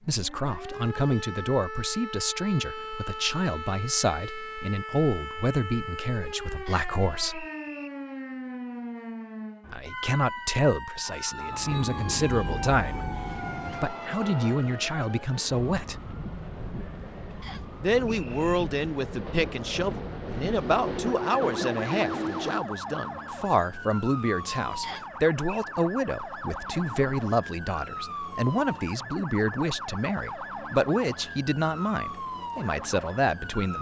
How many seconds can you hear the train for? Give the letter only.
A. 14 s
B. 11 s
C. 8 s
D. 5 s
B.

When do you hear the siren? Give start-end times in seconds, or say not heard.
0.1-33.7.